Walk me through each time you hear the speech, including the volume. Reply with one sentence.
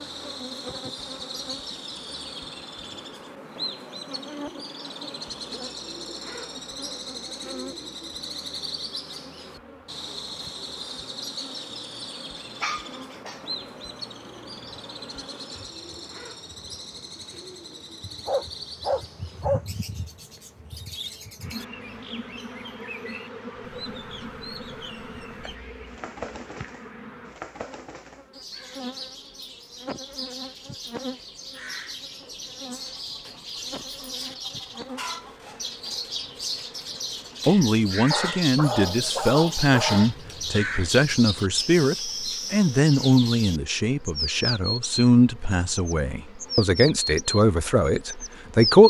The speech can be heard from 37.5 to 48.8 s, at a steady volume.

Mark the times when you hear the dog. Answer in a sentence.
You can hear the dog from 12.3 to 13.4 s, from 18.2 to 19.6 s and from 38.1 to 40.1 s.